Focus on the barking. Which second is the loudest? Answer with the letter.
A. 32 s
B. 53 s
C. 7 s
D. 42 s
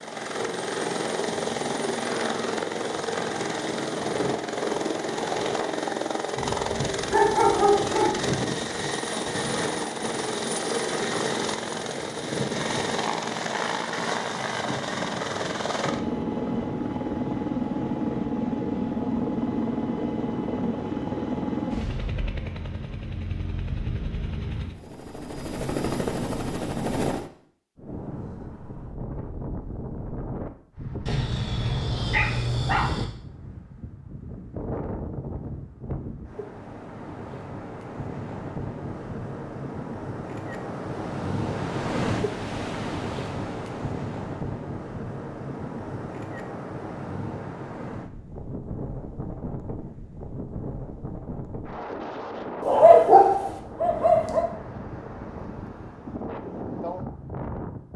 B.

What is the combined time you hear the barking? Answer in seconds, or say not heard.
6 s.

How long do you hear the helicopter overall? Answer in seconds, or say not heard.
27 s.